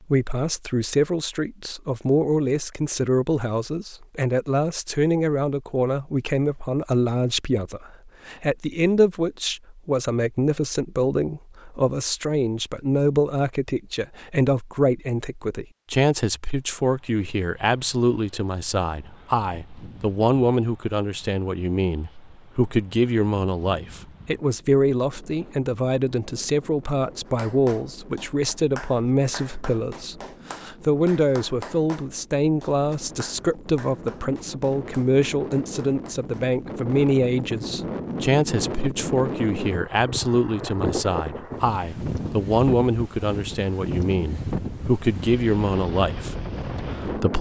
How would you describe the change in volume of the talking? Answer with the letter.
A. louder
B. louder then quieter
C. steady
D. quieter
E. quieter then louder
C.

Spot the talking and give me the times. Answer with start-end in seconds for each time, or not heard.
0.1-47.3.